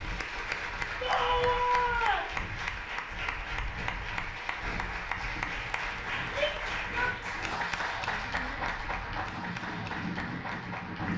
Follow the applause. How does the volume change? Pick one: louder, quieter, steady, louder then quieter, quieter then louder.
steady.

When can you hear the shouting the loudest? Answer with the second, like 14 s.
2 s.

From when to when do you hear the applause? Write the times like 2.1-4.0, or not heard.
0.0-11.1.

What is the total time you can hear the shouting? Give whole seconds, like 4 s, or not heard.
4 s.